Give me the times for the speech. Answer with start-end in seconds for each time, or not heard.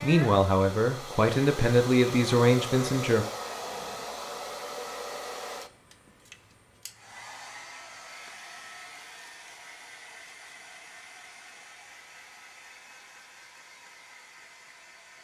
0.0-3.2.